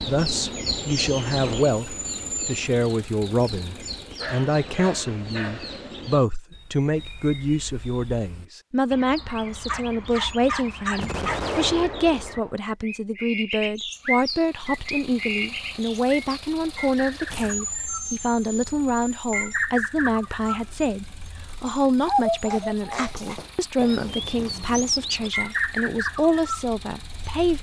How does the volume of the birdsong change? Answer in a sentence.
The loudness of the birdsong goes down, then up.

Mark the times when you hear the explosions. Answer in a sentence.
You can hear the explosions from 10.9 to 12.6 s.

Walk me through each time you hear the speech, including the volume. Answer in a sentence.
You can hear the speech from 0.0 to 27.5 s, at a steady volume.